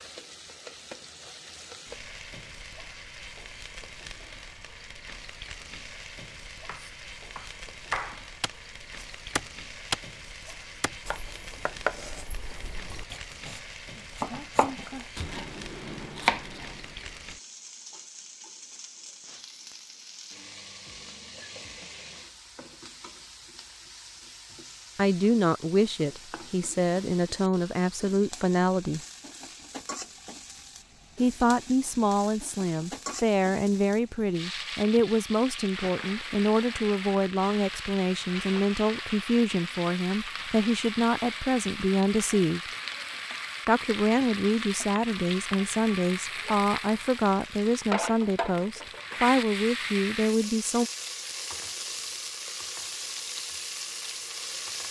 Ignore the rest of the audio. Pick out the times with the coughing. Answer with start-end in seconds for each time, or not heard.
not heard.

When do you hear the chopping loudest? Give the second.
16 s.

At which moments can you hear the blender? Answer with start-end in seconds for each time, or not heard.
not heard.